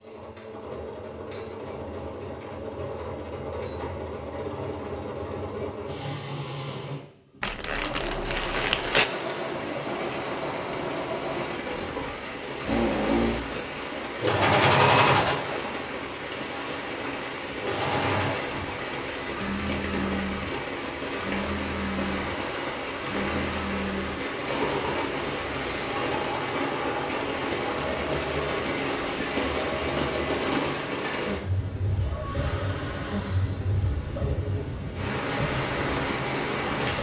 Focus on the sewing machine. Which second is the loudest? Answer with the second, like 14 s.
15 s.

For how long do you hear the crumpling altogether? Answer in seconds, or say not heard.
2 s.